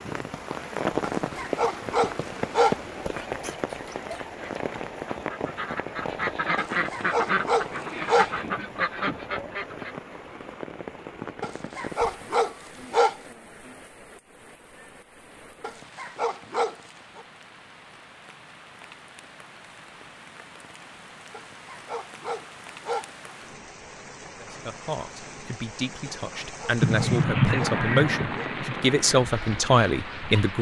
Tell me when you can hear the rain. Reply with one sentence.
The rain can be heard from 0.0 to 30.5 s.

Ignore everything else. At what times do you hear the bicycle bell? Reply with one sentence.
You can't hear the bicycle bell here.